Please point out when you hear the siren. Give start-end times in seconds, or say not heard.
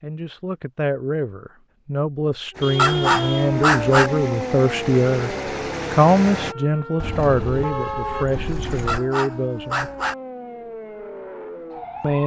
2.5-12.2.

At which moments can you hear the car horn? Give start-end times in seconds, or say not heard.
2.6-3.5, 7.0-9.0.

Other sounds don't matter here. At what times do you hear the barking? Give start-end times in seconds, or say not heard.
2.8-4.1, 8.8-10.2.